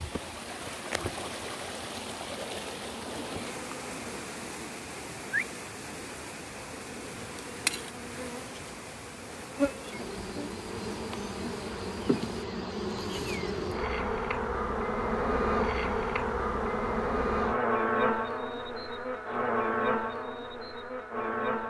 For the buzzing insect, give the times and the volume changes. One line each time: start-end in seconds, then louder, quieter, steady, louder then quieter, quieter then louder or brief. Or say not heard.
0.0-21.6 louder.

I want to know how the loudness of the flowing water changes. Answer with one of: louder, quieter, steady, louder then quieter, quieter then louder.
quieter.